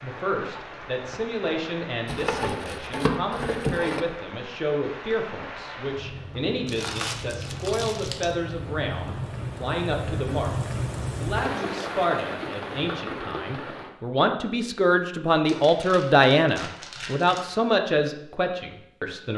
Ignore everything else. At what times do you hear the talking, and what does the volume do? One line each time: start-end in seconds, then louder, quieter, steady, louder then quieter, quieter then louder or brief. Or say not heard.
0.0-19.3 louder.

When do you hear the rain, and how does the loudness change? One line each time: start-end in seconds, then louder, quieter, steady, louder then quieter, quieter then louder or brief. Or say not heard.
0.0-13.9 louder.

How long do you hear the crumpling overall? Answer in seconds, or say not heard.
6 s.